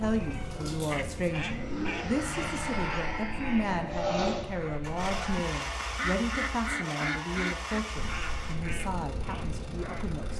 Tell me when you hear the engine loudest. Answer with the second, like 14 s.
4 s.